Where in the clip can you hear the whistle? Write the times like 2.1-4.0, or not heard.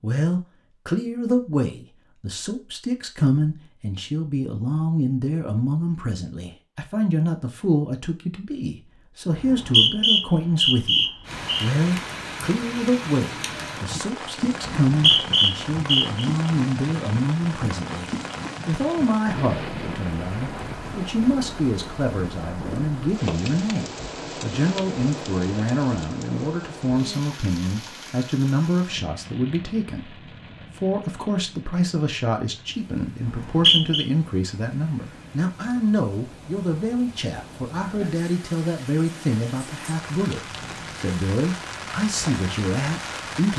9.3-11.7, 14.9-16.2, 33.2-34.0.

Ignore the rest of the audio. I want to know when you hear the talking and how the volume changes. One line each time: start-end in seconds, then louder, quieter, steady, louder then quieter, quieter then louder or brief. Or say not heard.
0.0-43.5 steady.